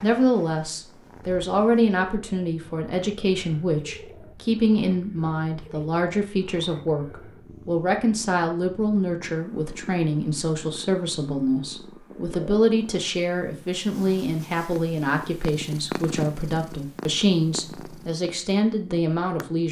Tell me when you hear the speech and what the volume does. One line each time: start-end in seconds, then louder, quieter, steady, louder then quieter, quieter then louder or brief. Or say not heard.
0.0-19.6 steady.